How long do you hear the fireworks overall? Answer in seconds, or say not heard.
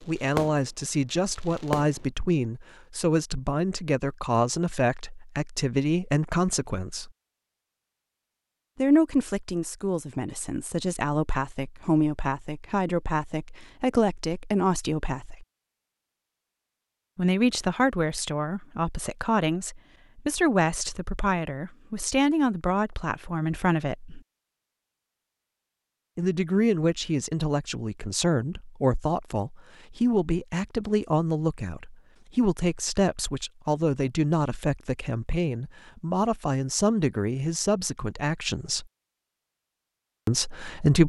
2 s.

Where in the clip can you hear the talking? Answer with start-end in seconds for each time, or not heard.
0.0-7.1, 8.8-15.4, 17.1-24.2, 26.1-38.9, 40.2-41.0.